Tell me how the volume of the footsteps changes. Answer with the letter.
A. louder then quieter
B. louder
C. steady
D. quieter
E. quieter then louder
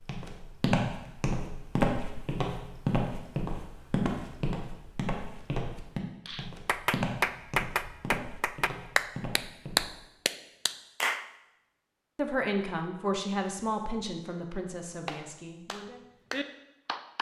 D.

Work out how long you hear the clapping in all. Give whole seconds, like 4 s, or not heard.
7 s.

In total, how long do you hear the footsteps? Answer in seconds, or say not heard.
10 s.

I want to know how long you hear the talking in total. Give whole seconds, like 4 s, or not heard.
4 s.